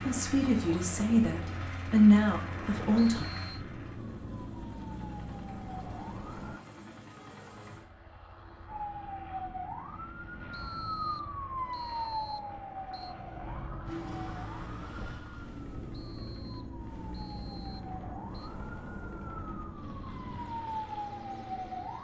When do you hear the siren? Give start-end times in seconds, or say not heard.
3.3-6.6, 8.7-21.9.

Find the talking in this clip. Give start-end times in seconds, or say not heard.
0.1-3.2.